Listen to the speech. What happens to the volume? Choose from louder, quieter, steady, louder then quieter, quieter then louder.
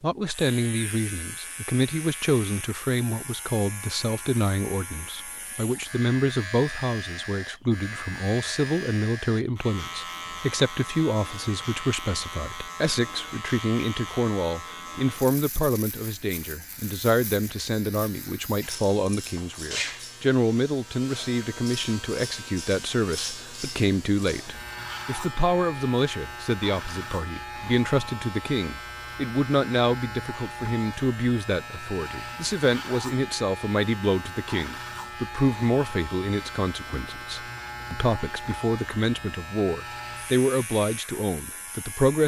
steady.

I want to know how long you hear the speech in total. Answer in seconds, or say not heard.
42 s.